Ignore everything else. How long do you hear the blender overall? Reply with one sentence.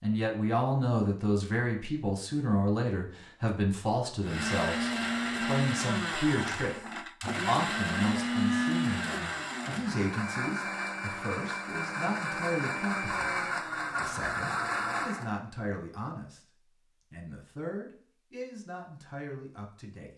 You can hear the blender for 11 seconds altogether.